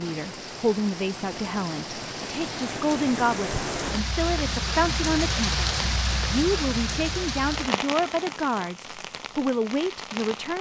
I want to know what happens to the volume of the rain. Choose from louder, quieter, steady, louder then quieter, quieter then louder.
louder then quieter.